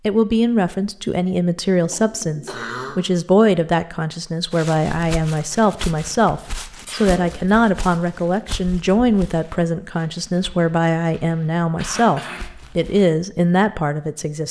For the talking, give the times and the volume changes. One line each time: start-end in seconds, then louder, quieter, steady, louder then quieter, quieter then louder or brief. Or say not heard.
0.1-14.4 steady.